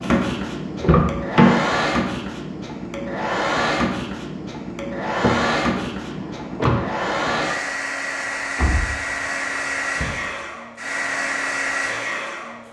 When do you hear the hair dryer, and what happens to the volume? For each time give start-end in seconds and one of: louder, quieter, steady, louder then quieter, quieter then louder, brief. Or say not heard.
0.0-12.6 steady.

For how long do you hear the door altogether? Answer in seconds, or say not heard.
4 s.